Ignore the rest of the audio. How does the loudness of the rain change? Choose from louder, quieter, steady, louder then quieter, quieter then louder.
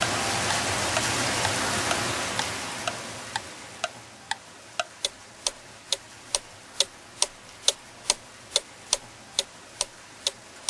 quieter.